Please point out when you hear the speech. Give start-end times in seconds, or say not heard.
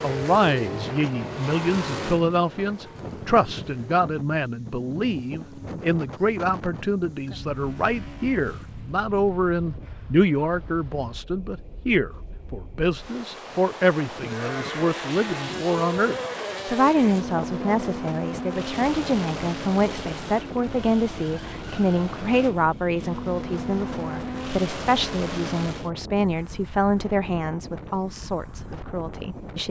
0.0-29.6.